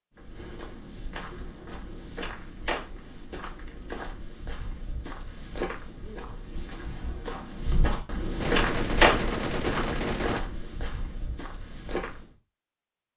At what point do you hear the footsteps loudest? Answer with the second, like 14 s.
9 s.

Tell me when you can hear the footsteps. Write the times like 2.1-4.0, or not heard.
0.1-12.3.